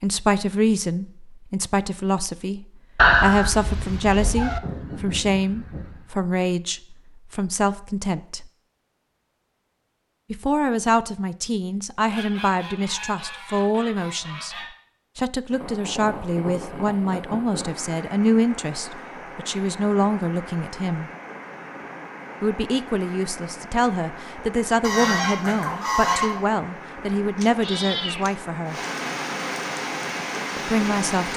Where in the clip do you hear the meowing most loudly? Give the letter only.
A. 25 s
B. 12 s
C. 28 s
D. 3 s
D.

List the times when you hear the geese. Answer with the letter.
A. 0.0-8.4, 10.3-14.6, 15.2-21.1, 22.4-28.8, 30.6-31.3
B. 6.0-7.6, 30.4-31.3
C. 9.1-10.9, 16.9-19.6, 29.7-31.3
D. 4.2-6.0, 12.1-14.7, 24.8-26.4
D.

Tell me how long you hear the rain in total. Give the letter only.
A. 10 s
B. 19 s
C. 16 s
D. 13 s
C.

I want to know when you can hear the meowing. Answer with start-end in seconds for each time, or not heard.
3.0-4.6, 27.4-28.3.